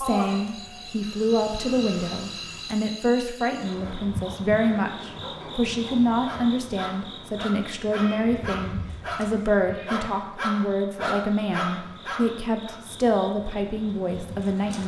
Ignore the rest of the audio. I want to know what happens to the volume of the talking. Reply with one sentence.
The volume of the talking stays about the same.